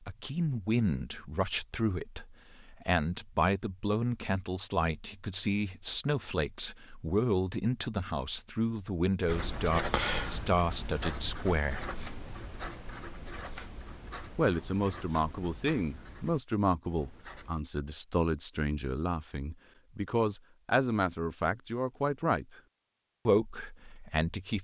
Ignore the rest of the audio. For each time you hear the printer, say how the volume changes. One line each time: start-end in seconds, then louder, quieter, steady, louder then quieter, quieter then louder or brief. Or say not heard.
not heard.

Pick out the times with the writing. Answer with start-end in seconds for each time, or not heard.
9.2-17.5.